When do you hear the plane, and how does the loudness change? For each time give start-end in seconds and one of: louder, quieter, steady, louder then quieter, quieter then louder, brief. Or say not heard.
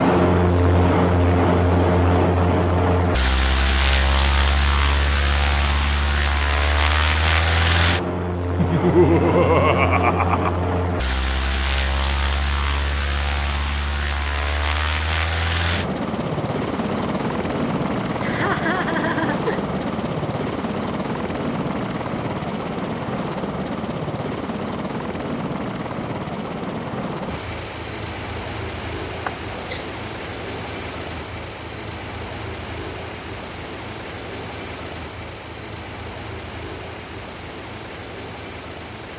0.0-39.1 quieter.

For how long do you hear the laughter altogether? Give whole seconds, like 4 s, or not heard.
4 s.